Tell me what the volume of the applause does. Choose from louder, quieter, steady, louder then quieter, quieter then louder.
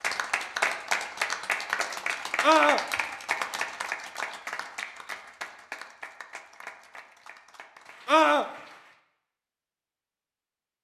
quieter.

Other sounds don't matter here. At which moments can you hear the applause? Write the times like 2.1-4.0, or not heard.
0.0-9.0.